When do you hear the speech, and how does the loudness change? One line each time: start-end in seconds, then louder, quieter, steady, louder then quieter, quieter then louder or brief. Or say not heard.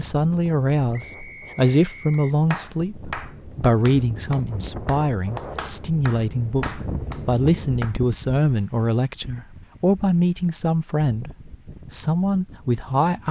0.0-13.2 steady.